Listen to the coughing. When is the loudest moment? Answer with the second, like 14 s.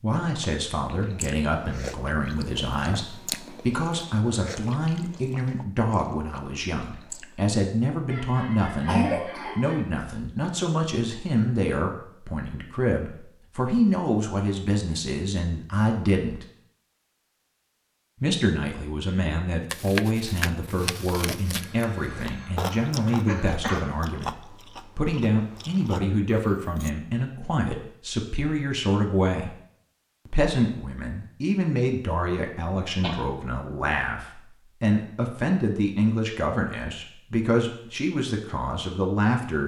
9 s.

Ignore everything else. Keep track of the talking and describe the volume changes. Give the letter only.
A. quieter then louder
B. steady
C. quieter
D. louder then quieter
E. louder
B.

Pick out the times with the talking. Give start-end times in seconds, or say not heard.
0.0-16.4, 18.2-29.6, 30.2-39.6.